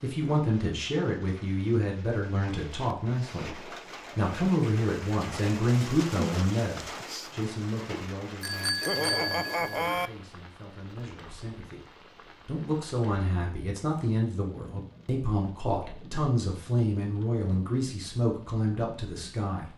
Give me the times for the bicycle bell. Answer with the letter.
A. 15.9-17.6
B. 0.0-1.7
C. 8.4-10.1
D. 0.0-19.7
C.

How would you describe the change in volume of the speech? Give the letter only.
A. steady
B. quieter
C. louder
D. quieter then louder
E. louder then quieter
D.